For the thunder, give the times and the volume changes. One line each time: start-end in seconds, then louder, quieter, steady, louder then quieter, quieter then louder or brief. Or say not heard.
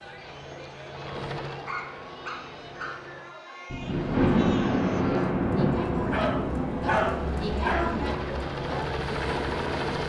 3.7-8.2 quieter.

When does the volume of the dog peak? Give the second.
7 s.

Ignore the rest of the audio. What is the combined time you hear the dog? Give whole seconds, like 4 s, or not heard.
3 s.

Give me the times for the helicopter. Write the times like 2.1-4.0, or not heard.
0.0-3.4, 7.2-10.0.